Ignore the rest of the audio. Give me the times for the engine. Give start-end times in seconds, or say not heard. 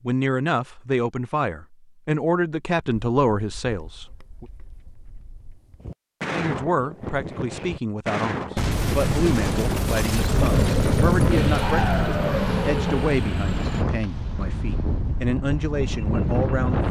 11.3-13.8.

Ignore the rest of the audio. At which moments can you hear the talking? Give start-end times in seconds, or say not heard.
0.1-4.5, 6.3-16.8.